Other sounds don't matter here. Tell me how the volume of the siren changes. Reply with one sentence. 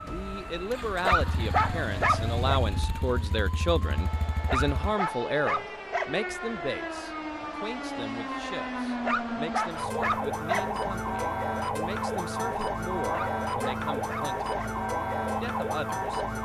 The volume of the siren goes up.